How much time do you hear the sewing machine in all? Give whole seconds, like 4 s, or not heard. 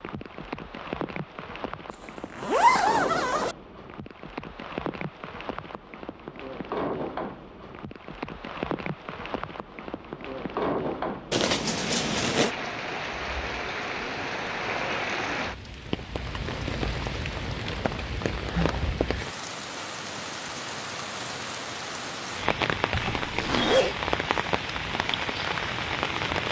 not heard.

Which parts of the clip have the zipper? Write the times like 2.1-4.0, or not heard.
1.9-3.5, 11.3-12.5, 22.9-23.9.